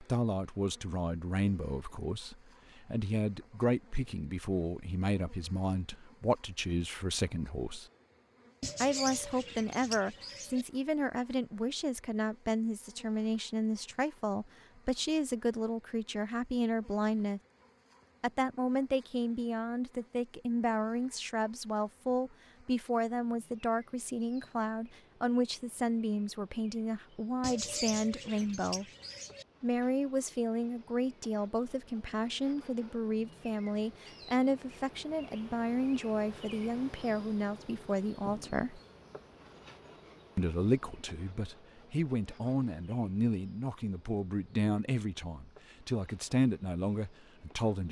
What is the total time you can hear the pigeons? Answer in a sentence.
You can hear the pigeons for 4 seconds altogether.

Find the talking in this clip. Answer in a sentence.
The talking can be heard from 0.0 to 7.8 s, from 8.8 to 17.4 s, from 18.2 to 28.9 s, from 29.6 to 38.8 s and from 40.4 to 47.8 s.